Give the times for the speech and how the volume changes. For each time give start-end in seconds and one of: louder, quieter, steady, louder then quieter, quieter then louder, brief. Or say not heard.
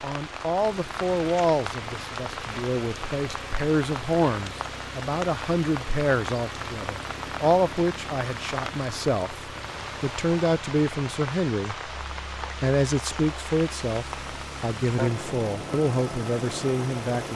0.0-17.3 steady.